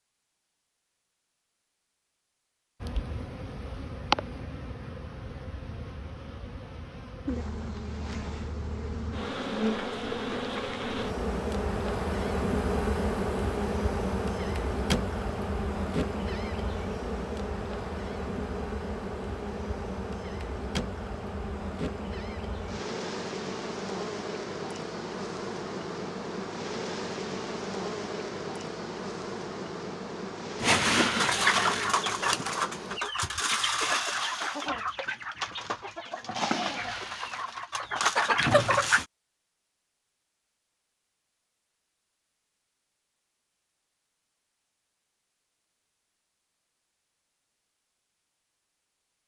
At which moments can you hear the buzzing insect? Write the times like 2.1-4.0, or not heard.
2.8-33.0.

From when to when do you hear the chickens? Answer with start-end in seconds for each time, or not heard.
30.6-39.0.